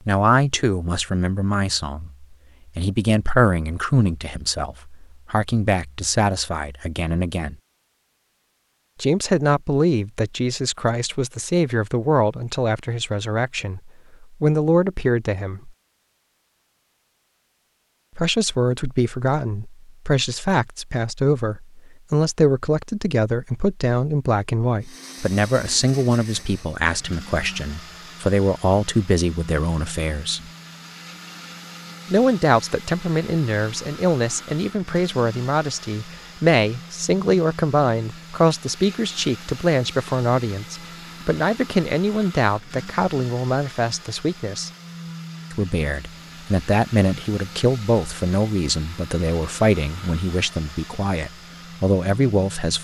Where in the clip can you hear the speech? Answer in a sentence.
You can hear the speech from 0.1 to 7.5 s, from 9.0 to 15.7 s, from 18.1 to 30.4 s, from 32.0 to 44.7 s and from 45.5 to 52.7 s.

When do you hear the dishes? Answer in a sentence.
The dishes can't be heard in this clip.